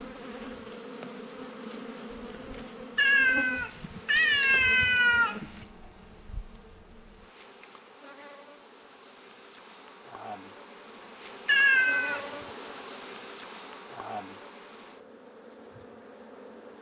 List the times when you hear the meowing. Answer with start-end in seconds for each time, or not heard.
3.0-5.7, 11.4-12.3.